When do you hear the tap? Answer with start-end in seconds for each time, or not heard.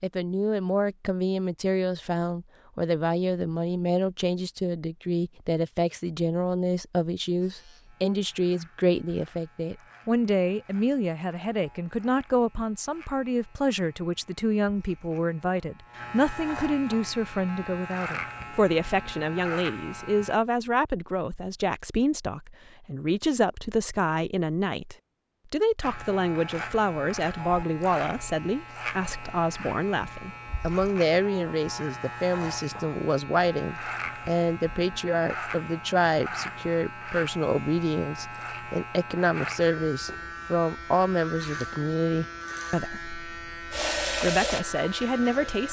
43.7-45.6.